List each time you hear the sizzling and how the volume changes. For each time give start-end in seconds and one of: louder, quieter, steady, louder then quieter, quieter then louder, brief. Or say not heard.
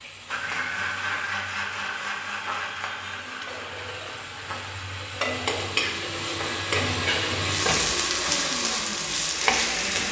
0.0-10.0 louder.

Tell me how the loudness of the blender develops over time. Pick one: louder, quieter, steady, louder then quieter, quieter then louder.
quieter then louder.